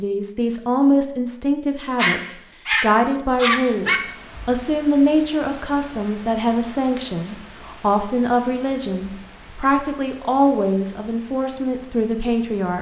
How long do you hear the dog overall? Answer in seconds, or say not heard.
2 s.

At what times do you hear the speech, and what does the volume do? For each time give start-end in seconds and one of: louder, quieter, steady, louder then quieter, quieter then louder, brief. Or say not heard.
0.0-12.7 steady.